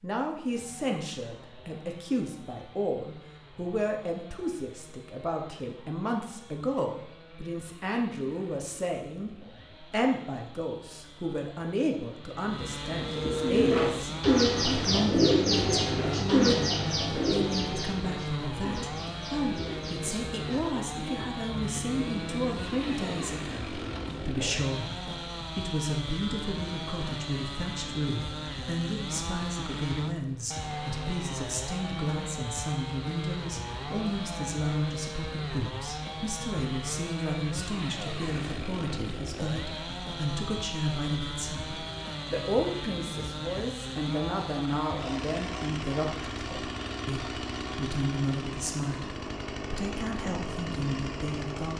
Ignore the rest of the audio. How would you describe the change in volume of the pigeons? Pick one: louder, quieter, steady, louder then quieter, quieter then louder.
quieter.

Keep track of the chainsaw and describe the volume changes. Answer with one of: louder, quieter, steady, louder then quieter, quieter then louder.
louder.